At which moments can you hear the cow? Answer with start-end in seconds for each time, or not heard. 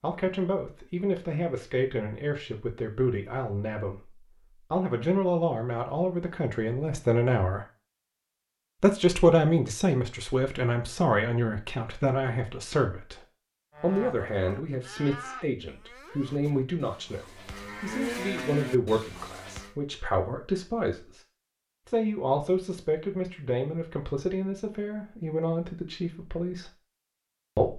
13.7-19.8.